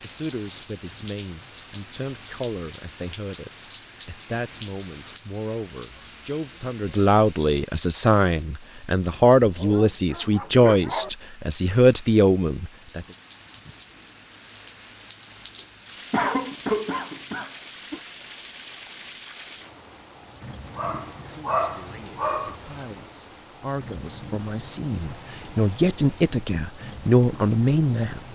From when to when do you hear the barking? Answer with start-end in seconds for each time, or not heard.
9.3-11.1, 20.8-22.6.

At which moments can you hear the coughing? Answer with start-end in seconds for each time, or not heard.
16.1-18.0.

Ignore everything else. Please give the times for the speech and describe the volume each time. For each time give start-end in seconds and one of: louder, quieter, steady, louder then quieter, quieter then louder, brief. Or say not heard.
0.0-13.1 louder
21.2-28.3 louder.